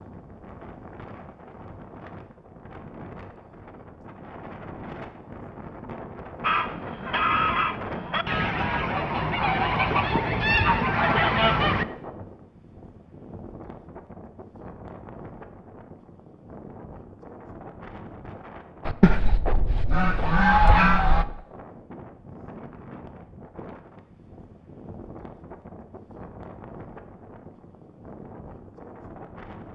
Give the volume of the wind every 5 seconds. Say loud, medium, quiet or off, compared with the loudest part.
medium, loud, medium, medium, medium, medium.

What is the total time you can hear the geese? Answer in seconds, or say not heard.
8 s.